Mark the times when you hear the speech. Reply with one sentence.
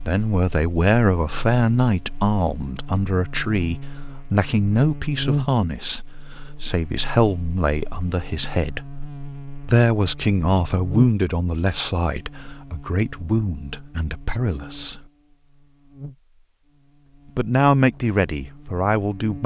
You can hear the speech from 0.1 to 8.8 s, from 9.6 to 15.0 s and from 17.4 to 19.4 s.